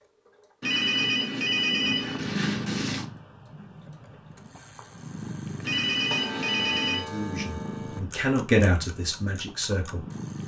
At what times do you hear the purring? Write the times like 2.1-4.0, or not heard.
1.8-10.4.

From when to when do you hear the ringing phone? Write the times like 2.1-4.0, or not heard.
0.6-3.0, 5.6-7.0.